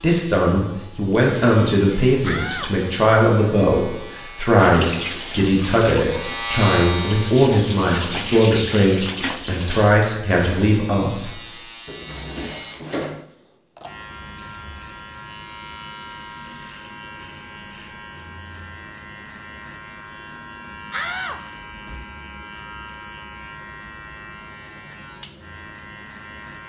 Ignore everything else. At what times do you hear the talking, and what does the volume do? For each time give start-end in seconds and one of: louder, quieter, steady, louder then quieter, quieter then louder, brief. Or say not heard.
0.0-11.4 steady.